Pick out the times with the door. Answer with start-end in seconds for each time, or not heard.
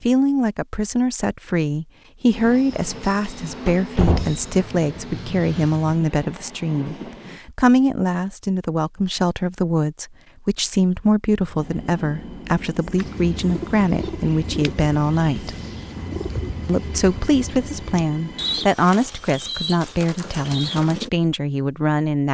3.6-4.5.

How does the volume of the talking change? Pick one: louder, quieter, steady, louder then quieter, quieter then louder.
steady.